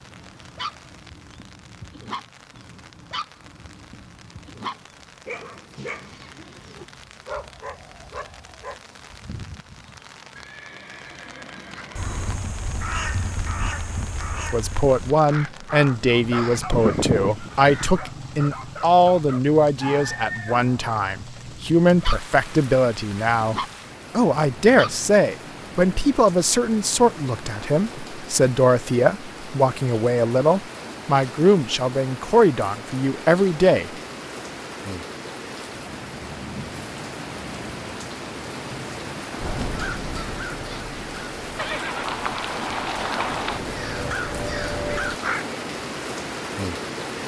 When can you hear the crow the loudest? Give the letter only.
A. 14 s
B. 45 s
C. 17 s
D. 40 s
C.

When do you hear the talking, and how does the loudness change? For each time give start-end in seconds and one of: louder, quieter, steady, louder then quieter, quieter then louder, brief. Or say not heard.
14.3-33.9 steady.